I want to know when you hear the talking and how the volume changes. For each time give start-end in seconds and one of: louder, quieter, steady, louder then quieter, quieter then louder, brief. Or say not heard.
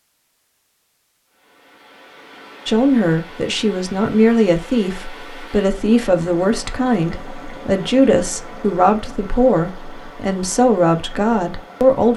2.6-12.1 steady.